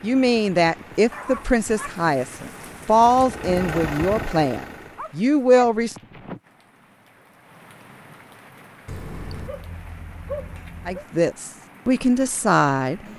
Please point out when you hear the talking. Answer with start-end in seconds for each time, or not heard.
0.0-6.0, 10.8-13.0.